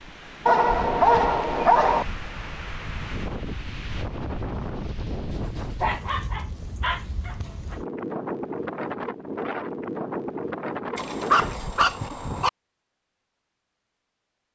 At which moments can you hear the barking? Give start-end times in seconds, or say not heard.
0.5-2.0, 5.5-7.8, 10.9-12.5.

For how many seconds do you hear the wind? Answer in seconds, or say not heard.
12 s.